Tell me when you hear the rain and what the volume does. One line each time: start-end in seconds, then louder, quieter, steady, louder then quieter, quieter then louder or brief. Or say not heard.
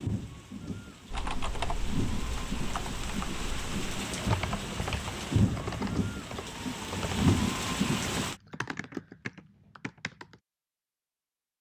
0.0-8.3 louder.